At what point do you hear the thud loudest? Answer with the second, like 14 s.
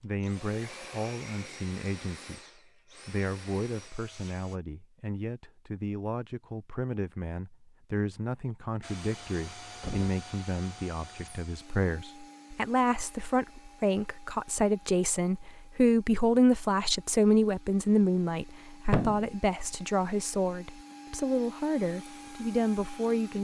19 s.